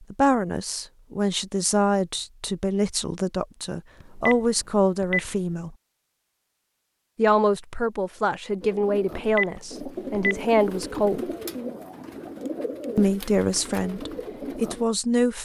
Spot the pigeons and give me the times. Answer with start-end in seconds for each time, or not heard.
8.6-14.8.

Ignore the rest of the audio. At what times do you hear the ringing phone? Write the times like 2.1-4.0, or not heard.
4.0-5.3, 9.1-11.0.